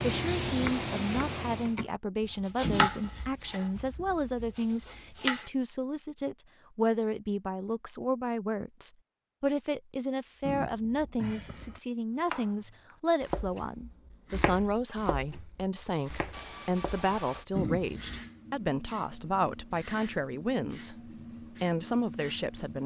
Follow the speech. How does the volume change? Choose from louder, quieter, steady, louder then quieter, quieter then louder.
steady.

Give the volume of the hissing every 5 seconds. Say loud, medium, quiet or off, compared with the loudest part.
loud, off, off, medium, medium.